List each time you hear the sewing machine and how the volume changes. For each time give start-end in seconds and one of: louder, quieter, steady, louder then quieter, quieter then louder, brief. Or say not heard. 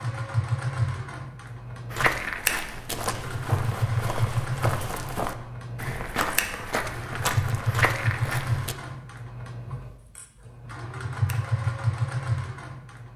0.0-13.1 steady.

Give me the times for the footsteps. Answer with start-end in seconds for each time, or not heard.
1.9-8.8.